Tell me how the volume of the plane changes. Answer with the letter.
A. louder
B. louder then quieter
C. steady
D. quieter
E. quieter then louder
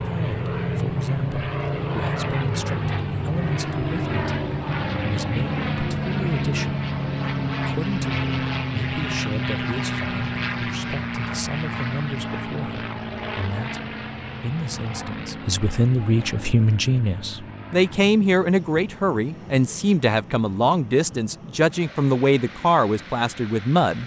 D.